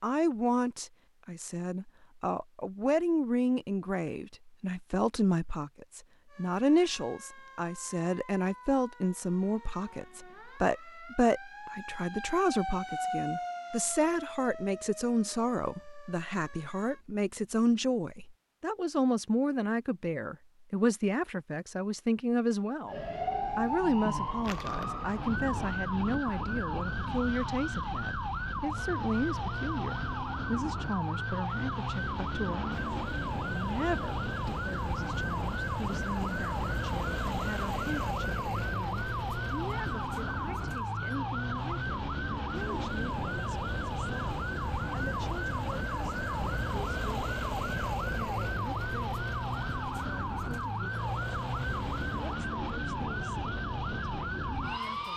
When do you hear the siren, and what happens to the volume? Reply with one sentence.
The siren can be heard from 6.2 to 17.1 s, getting louder then quieter; and from 22.9 to 55.1 s, at a steady volume.